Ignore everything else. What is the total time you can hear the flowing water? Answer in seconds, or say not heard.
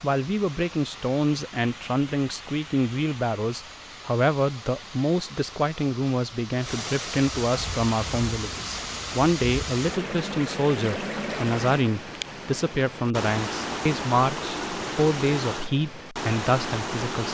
17 s.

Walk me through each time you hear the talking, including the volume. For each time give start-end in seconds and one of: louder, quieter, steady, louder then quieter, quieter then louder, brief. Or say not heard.
0.0-17.3 steady.